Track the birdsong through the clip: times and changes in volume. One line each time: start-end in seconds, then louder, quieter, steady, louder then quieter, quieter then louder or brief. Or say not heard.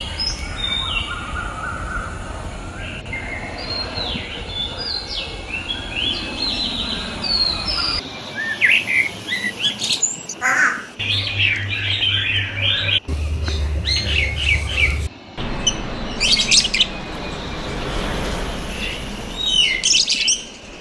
0.0-20.7 louder.